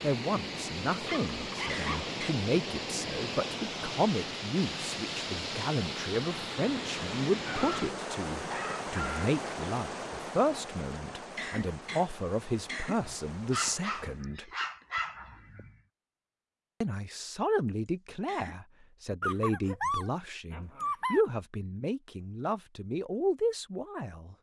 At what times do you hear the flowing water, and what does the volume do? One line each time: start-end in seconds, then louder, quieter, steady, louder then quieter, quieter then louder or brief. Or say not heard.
0.0-14.2 quieter.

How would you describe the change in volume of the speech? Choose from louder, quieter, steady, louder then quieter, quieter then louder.
steady.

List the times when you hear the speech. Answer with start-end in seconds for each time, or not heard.
0.0-14.5, 16.8-24.3.